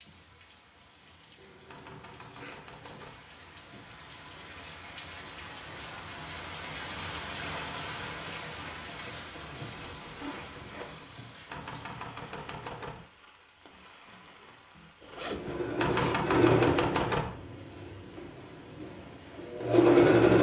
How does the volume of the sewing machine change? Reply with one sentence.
The loudness of the sewing machine goes down, then up.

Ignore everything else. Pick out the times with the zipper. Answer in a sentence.
The zipper can be heard from 1.4 to 2.6 s, from 9.3 to 11.1 s and from 15.0 to 16.4 s.